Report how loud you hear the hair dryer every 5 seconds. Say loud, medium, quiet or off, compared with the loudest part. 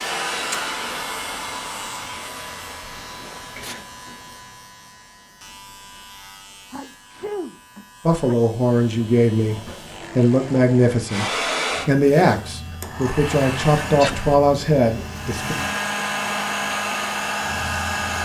medium, off, loud, loud.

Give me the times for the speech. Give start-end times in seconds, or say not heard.
8.1-15.6.